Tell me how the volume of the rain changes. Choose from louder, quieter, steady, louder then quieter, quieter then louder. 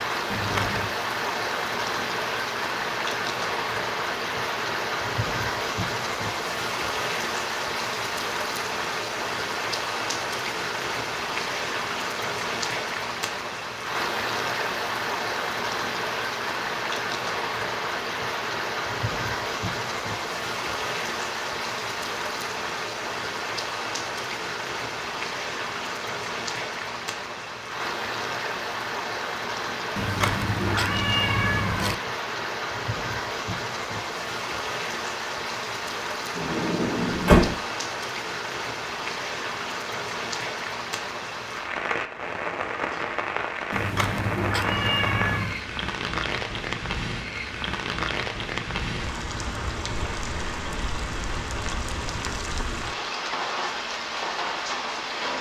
steady.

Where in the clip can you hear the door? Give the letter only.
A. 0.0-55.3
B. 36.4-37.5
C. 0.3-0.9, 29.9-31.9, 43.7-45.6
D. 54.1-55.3
B.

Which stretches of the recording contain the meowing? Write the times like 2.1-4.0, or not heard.
0.3-0.9, 29.9-31.9, 43.7-45.6.